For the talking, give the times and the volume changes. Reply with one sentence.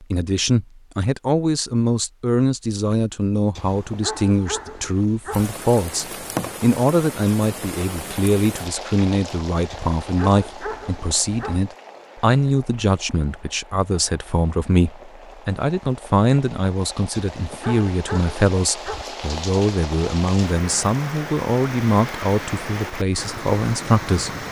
The talking can be heard from 0.0 to 24.3 s, at a steady volume.